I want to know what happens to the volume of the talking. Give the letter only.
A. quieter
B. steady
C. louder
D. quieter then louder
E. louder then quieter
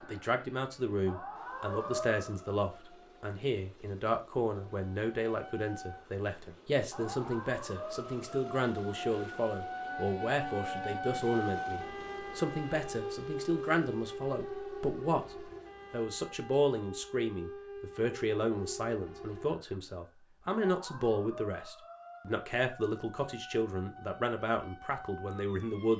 B.